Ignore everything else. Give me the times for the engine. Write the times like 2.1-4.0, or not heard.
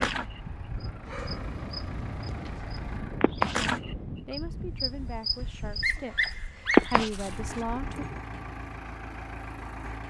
0.1-3.3, 7.1-10.0.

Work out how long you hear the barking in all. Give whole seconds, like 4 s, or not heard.
4 s.